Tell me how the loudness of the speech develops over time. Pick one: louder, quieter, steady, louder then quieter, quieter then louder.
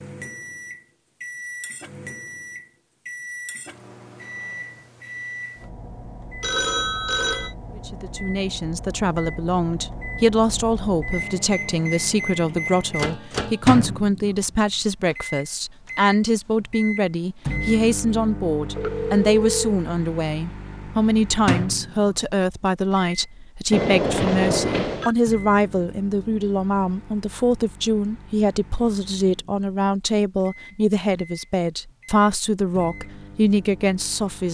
steady.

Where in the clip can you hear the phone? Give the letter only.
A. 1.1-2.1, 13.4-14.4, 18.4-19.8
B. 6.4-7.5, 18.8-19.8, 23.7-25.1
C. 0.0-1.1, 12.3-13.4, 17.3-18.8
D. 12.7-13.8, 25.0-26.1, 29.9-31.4
B.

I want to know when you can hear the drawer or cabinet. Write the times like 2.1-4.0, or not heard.
not heard.